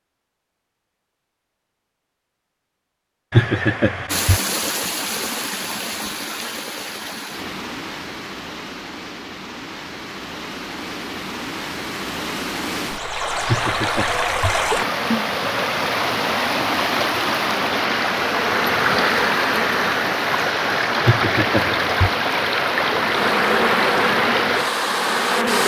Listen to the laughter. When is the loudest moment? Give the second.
4 s.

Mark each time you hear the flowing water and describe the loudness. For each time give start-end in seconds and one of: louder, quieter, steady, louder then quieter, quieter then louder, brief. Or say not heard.
4.0-25.6 louder.